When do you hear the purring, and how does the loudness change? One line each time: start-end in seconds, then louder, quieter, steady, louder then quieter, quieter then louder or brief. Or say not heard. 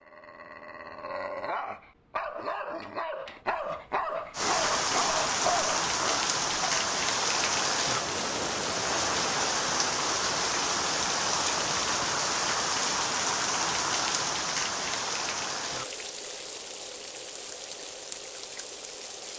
not heard.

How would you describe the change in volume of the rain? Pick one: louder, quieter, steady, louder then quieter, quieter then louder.
quieter.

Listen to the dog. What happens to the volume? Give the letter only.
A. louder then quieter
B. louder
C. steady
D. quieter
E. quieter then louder
B.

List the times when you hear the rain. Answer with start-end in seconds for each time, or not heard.
4.3-19.3.